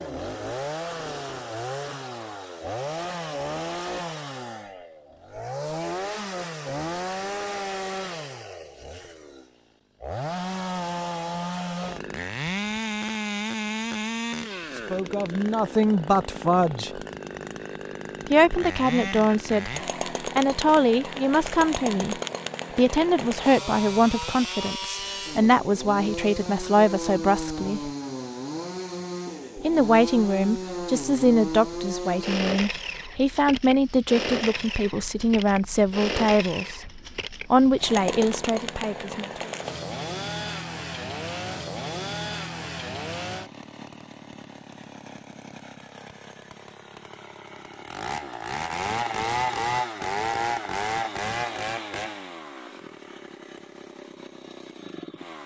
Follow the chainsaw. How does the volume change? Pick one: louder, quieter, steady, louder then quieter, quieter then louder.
steady.